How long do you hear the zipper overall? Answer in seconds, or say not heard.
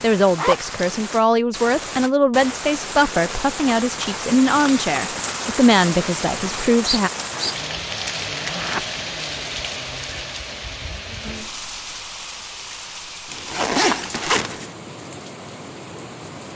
3 s.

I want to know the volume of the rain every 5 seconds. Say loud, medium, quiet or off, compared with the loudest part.
loud, loud, medium, medium.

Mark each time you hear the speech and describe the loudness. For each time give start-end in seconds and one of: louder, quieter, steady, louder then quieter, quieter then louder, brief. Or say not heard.
0.0-7.1 steady.